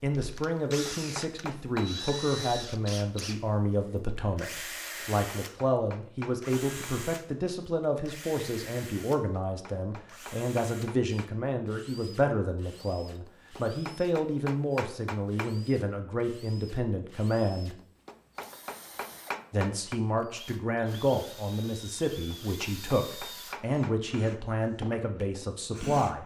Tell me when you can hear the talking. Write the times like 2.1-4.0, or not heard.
0.0-17.8, 19.5-26.2.